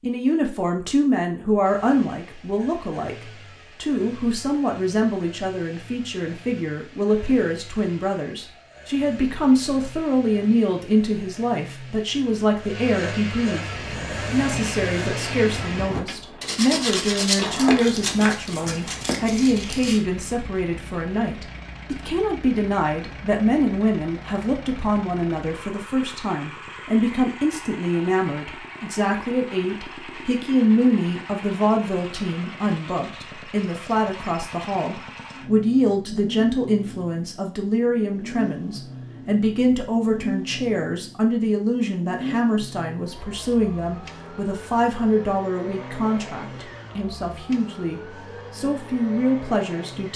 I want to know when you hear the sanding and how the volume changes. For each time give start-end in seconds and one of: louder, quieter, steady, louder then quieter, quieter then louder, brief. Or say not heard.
13.6-20.0 louder then quieter.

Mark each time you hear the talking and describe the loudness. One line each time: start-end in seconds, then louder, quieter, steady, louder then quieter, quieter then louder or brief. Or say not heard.
0.0-50.1 steady.